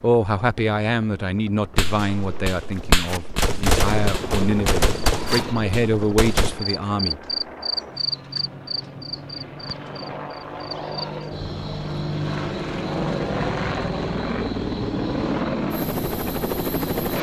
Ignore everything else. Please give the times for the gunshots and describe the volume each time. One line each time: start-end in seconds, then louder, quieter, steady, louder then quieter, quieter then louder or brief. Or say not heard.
1.8-6.6 quieter.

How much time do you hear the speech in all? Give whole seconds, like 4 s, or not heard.
7 s.